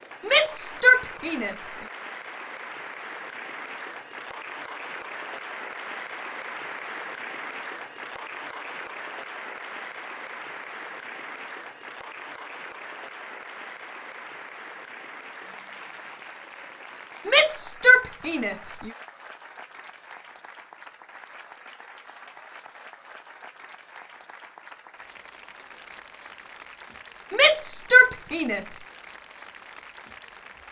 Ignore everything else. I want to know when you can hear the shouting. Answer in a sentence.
You can hear the shouting from 0.2 to 1.7 s, from 17.2 to 18.9 s and from 27.3 to 28.8 s.